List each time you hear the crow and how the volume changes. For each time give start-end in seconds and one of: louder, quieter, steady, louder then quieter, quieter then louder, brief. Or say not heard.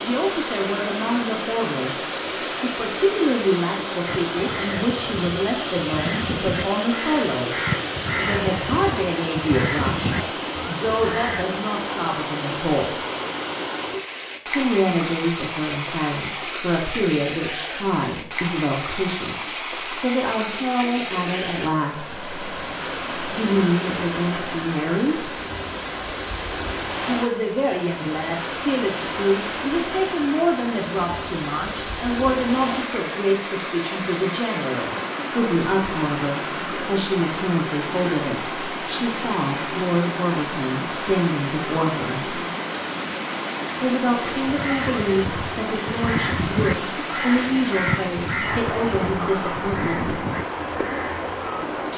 4.0-11.4 louder
44.3-51.6 louder then quieter.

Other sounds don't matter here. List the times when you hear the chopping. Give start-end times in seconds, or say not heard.
not heard.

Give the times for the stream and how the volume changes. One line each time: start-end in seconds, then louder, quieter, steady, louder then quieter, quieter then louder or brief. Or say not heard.
0.0-51.9 steady.